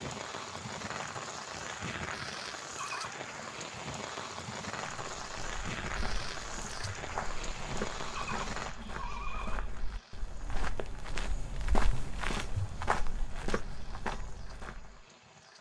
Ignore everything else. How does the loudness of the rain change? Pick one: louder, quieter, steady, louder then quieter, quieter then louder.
quieter.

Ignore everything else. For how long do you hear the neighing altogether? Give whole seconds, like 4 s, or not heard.
2 s.